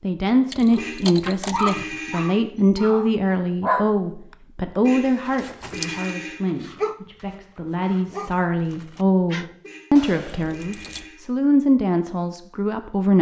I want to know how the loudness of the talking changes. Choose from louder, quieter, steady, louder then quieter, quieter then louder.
quieter then louder.